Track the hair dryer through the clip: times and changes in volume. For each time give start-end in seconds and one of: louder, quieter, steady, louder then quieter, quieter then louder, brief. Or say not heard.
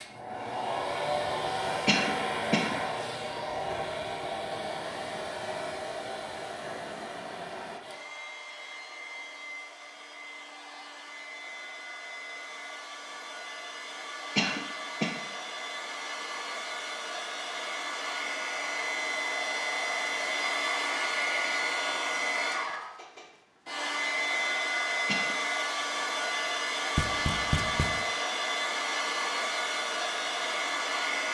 0.0-31.2 quieter then louder.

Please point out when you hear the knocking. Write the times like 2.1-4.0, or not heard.
26.9-28.1.